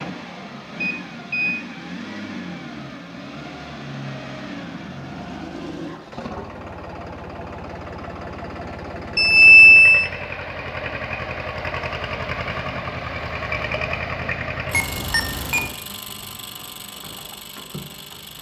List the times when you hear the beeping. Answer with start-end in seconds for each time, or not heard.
0.8-1.6, 9.2-10.1, 14.7-15.8.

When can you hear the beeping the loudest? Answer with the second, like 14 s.
10 s.